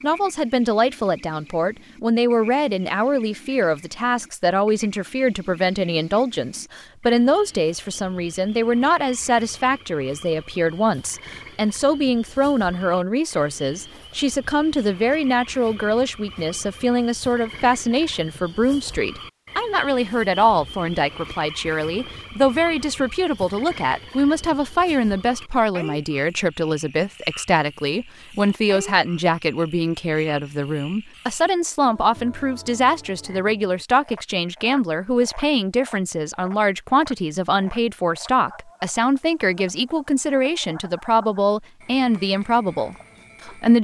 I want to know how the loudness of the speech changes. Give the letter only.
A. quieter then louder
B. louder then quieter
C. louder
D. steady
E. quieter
D.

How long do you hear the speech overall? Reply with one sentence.
You can hear the speech for 44 seconds altogether.